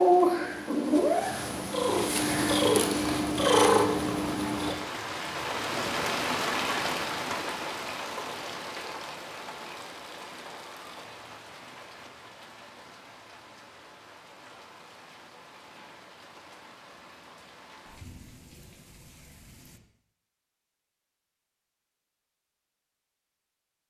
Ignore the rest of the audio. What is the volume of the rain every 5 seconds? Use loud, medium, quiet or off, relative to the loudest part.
medium, loud, quiet, quiet, off.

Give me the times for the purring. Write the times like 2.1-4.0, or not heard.
0.0-4.8.